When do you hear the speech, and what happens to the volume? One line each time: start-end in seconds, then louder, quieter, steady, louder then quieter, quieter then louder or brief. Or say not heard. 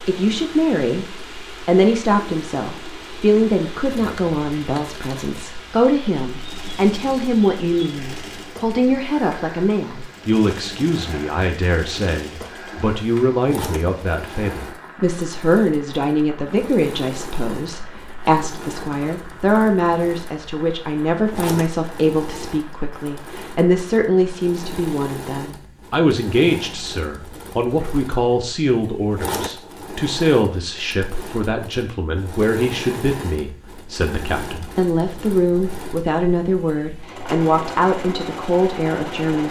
0.0-39.4 steady.